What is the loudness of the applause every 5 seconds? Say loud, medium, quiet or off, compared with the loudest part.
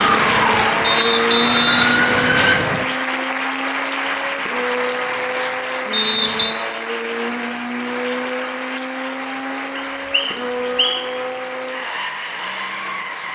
loud, medium, medium.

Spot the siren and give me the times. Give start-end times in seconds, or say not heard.
0.0-2.5.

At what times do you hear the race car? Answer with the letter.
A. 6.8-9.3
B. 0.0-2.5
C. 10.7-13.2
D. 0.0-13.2
D.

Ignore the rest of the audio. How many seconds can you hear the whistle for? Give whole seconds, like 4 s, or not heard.
4 s.